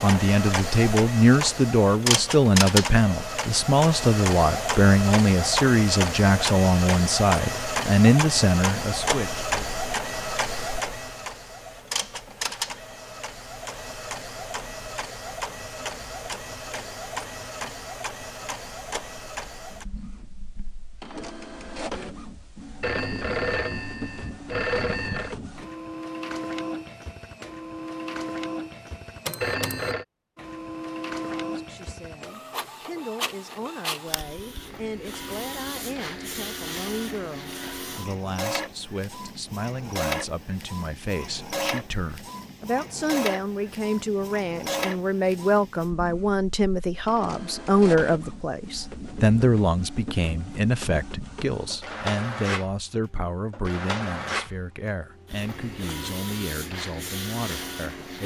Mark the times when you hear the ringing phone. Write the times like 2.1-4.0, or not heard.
22.8-25.4, 29.4-30.1.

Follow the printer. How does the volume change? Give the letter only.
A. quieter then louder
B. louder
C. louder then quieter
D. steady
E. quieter
E.